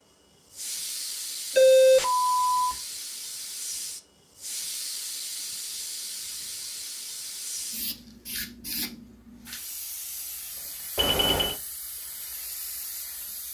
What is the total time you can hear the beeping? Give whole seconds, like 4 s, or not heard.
2 s.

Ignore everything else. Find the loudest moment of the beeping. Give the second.
2 s.